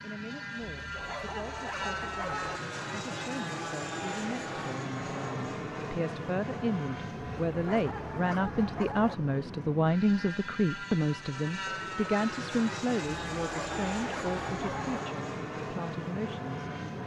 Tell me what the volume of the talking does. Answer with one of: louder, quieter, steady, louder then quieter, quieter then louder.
louder then quieter.